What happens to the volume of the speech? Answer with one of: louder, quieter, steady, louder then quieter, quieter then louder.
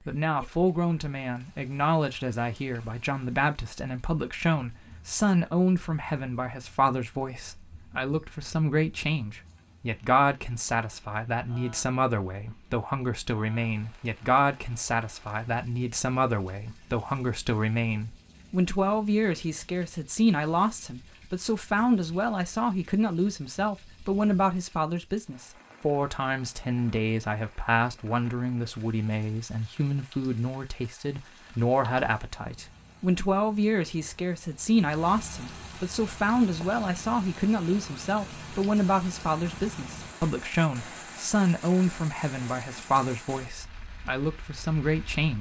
steady.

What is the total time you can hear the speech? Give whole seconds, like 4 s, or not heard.
45 s.